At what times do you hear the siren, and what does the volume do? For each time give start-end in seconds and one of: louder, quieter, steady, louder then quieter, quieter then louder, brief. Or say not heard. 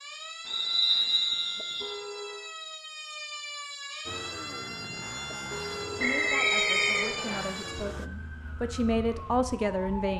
0.0-10.1 louder then quieter.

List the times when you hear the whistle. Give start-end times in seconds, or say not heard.
0.5-1.9, 6.0-7.5.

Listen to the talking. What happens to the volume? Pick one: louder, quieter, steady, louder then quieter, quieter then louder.
louder.